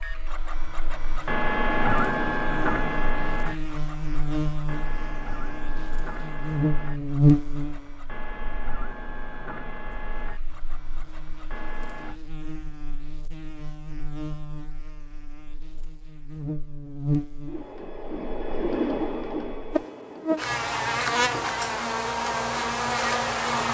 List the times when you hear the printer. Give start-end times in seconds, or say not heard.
0.0-12.2, 17.4-21.4.